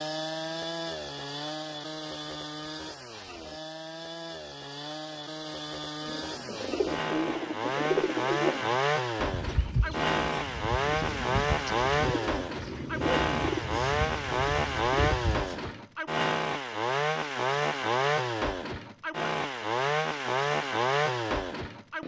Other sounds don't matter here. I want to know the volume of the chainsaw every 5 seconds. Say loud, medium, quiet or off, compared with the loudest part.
medium, loud, loud, loud, loud.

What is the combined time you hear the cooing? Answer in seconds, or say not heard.
10 s.